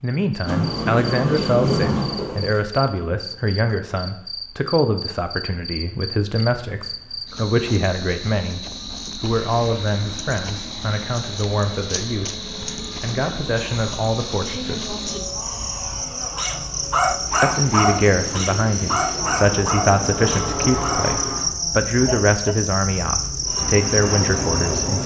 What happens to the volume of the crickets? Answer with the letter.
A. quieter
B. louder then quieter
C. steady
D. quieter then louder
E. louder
E.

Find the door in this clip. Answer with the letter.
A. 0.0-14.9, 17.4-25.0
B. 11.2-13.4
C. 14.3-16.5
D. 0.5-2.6
D.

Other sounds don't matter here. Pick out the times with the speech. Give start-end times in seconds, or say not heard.
0.0-14.9, 17.4-25.0.